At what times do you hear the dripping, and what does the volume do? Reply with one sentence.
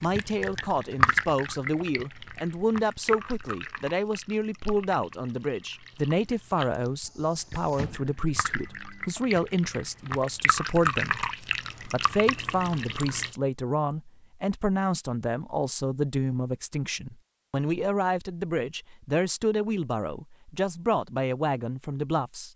The dripping can be heard from 0.0 to 13.3 s, getting quieter then louder.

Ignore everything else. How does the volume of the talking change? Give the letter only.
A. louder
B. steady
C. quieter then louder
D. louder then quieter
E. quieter
B.